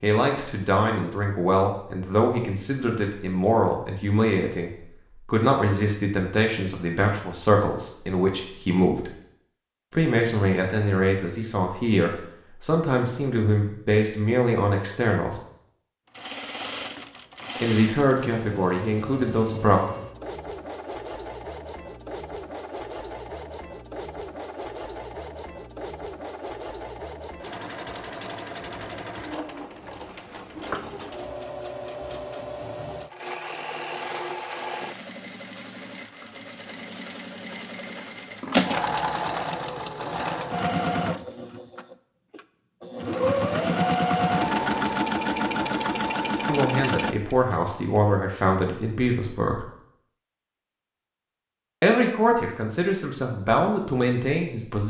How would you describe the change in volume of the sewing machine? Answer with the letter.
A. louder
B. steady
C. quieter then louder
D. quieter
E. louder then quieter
A.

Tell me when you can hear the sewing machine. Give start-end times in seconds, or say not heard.
16.1-47.8.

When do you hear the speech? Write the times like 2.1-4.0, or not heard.
0.0-9.1, 9.9-15.4, 17.6-19.8, 46.4-49.6, 51.8-54.8.